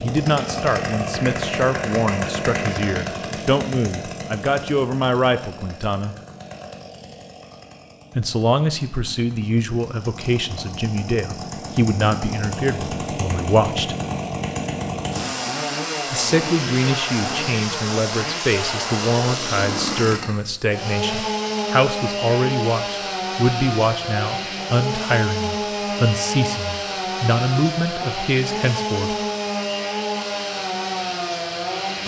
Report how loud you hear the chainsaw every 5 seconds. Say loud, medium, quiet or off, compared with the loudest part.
loud, quiet, loud, loud, loud, loud, loud.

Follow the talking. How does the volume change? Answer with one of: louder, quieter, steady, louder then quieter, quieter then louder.
steady.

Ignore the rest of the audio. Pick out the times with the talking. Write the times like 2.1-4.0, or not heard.
0.0-6.2, 8.2-13.9, 16.1-29.1.